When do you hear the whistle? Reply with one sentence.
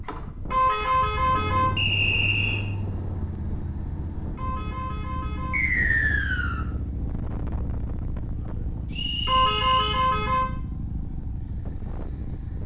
You can hear the whistle from 1.8 to 2.6 s, from 5.5 to 6.7 s and from 8.9 to 10.0 s.